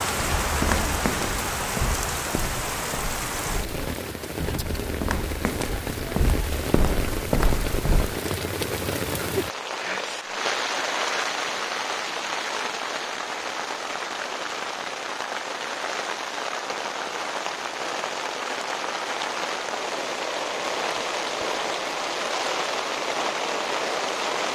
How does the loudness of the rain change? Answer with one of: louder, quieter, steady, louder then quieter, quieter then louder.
steady.